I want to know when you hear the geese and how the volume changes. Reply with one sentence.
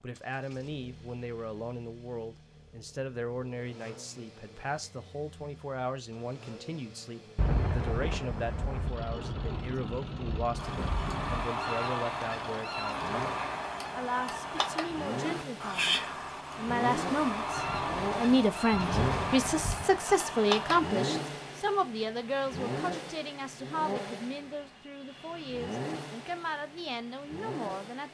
The geese can be heard from 10.6 to 21.0 s, at a steady volume.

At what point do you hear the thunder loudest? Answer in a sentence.
The loudest moment of the thunder is at 8 seconds.